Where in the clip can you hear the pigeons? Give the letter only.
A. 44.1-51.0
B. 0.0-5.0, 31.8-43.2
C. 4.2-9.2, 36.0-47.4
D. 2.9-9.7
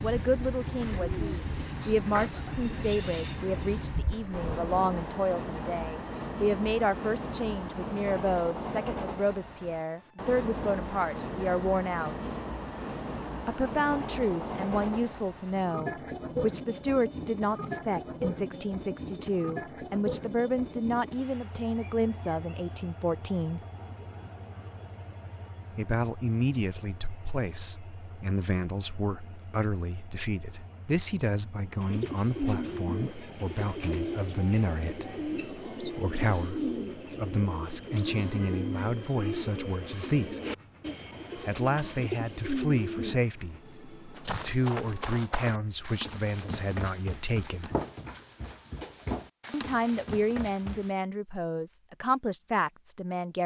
B.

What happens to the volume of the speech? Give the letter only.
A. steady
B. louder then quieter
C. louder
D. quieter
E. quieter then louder
A.